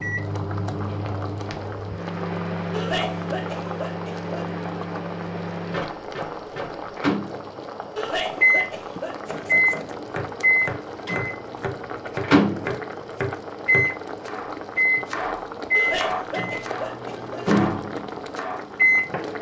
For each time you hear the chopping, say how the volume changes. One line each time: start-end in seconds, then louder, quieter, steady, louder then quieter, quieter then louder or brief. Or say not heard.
9.2-19.3 steady.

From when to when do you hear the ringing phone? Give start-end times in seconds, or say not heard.
not heard.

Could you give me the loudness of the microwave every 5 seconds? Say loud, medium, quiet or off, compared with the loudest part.
medium, loud, loud, loud.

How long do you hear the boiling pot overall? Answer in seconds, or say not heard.
19 s.